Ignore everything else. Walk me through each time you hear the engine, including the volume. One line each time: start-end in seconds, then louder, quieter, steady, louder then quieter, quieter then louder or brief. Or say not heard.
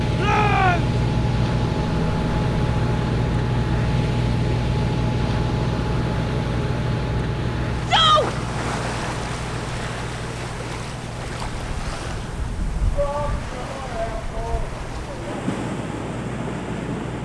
0.0-17.1 quieter.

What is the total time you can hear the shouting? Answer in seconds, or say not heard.
4 s.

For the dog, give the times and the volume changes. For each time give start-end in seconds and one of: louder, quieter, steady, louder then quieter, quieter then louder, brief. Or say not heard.
not heard.